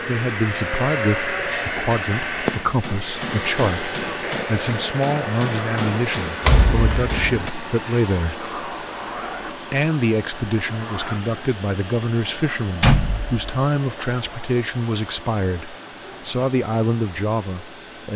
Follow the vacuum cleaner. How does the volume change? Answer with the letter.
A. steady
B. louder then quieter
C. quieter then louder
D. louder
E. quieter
E.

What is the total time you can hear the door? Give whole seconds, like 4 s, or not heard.
2 s.